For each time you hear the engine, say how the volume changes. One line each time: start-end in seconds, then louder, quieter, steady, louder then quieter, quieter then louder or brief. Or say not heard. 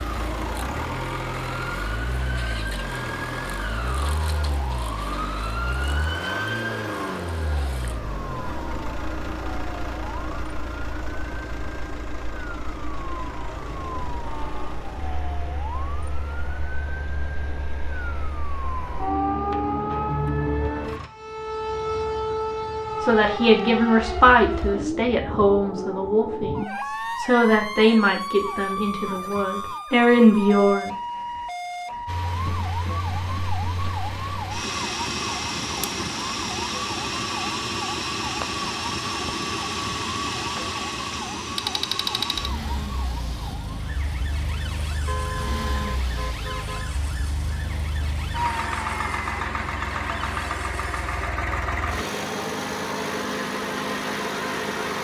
0.0-21.1 quieter
32.0-55.0 steady.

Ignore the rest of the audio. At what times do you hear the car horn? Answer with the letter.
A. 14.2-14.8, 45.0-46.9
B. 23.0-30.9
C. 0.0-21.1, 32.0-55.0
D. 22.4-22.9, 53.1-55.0
A.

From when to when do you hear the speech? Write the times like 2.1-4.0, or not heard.
23.0-30.9.